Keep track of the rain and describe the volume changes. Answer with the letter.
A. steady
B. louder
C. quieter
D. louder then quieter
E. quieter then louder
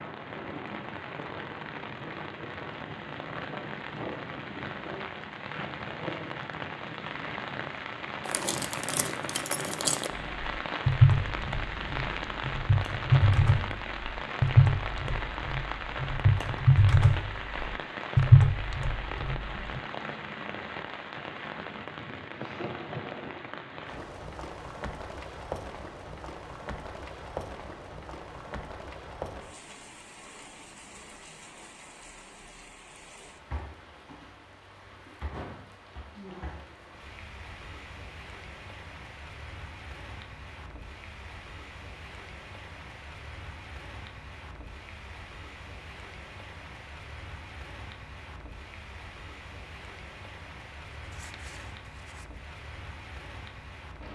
C.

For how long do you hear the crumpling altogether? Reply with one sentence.
The crumpling can be heard for 3 seconds in total.